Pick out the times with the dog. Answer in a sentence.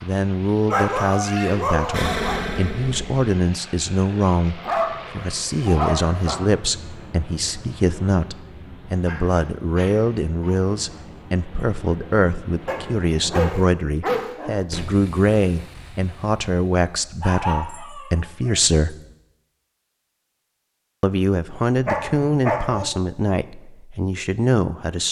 The dog can be heard from 0.7 to 2.5 s, from 4.5 to 6.4 s, from 9.1 to 10.6 s, from 12.7 to 14.6 s, from 17.2 to 18.6 s and from 21.9 to 22.9 s.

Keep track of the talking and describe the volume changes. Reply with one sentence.
The volume of the talking stays about the same.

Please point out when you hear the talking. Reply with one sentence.
The talking can be heard from 0.0 to 18.9 s and from 21.0 to 25.0 s.